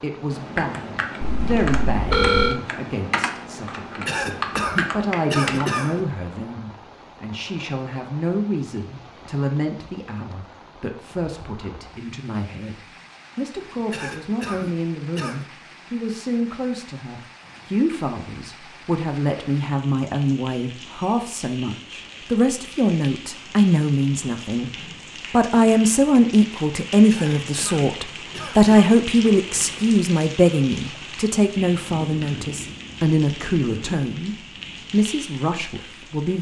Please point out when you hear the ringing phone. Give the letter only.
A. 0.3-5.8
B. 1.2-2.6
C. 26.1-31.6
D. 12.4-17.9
B.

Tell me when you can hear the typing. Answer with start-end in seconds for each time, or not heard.
0.3-5.8.